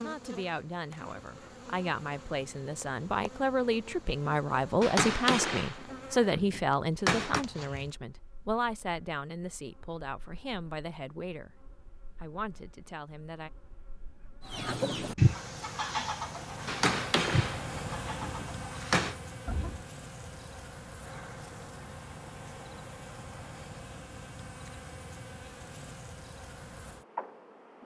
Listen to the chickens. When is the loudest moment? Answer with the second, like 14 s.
15 s.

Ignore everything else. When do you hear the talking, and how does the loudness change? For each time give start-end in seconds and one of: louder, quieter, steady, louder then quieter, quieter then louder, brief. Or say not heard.
0.0-11.5 louder then quieter
12.2-13.5 brief.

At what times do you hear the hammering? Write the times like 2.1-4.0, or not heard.
4.8-7.5, 16.6-19.1.